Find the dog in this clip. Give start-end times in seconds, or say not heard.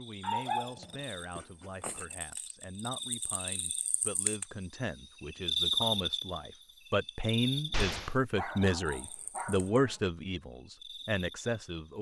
0.2-2.0, 8.3-10.0.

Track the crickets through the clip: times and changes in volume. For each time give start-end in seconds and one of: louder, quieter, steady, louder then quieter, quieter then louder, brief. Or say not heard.
0.0-11.9 louder then quieter.